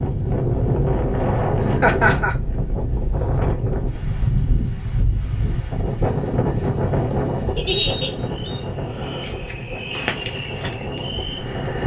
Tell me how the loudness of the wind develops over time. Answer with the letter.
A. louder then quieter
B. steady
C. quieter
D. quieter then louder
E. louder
C.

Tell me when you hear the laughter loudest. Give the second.
2 s.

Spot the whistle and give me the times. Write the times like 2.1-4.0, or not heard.
7.7-8.6.